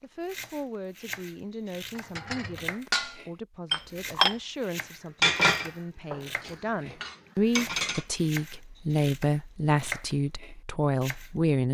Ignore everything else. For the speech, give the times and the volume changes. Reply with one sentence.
You can hear the speech from 0.0 to 11.7 s, getting louder.